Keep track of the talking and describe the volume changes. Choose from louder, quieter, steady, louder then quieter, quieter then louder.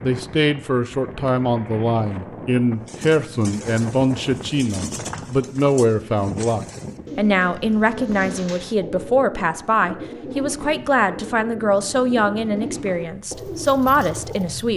steady.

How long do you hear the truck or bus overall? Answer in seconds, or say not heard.
not heard.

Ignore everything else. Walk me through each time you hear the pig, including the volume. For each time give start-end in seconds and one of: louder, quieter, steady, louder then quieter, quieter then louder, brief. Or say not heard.
not heard.